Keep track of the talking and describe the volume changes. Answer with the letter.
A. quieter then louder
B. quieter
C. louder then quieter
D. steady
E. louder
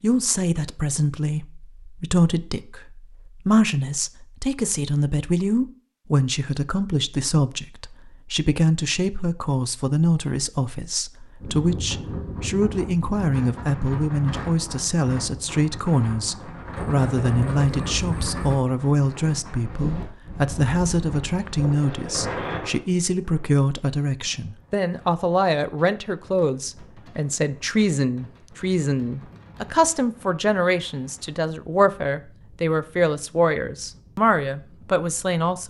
D.